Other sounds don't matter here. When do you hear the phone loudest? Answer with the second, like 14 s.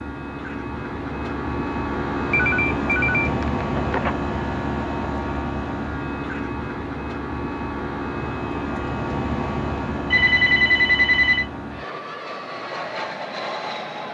11 s.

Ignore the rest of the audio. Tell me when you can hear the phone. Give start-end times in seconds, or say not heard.
2.3-4.2, 10.1-11.4.